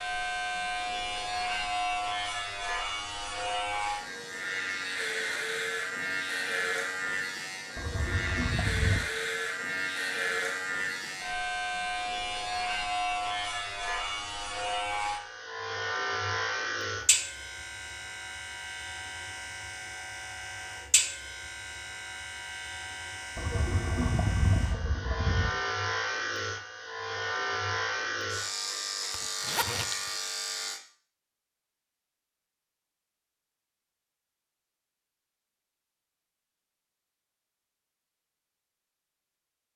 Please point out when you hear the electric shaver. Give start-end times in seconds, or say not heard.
0.0-30.8.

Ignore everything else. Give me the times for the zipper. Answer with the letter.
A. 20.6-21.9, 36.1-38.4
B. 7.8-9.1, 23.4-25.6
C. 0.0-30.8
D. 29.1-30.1
D.